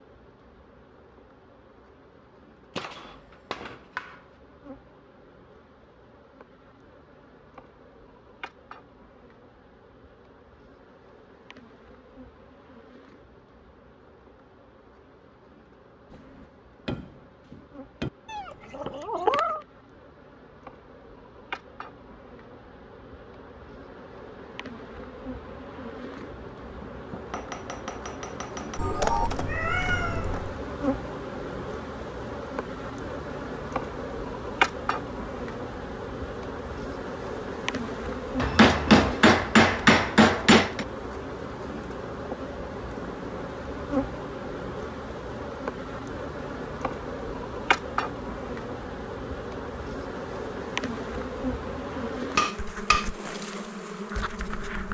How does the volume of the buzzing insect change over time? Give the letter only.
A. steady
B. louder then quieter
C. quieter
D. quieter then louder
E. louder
E.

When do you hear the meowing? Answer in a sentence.
The meowing can be heard from 18.2 to 19.6 s and from 28.8 to 30.6 s.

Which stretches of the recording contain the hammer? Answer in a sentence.
The hammer can be heard from 2.8 to 4.2 s, from 16.1 to 18.1 s, from 26.8 to 28.8 s, from 38.4 to 40.9 s and from 52.4 to 53.0 s.